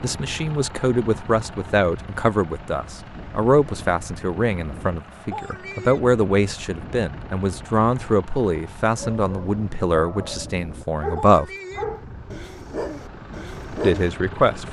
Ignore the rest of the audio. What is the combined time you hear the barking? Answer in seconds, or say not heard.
5 s.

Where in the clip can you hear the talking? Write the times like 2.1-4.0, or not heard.
0.0-11.5, 13.8-14.6.